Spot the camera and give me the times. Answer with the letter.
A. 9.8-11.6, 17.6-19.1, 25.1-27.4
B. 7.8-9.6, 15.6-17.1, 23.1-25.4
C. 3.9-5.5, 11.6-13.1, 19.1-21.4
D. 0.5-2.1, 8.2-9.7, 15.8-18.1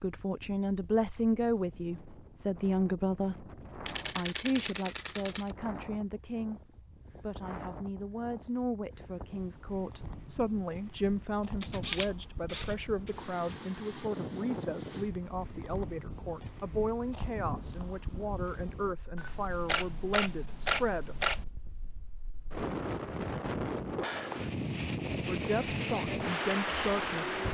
C.